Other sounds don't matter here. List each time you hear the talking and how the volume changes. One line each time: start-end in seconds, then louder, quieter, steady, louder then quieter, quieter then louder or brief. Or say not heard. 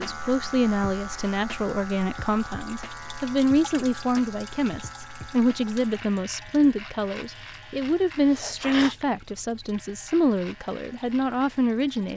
0.0-12.1 steady.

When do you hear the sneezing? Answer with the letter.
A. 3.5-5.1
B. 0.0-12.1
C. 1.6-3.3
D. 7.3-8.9
D.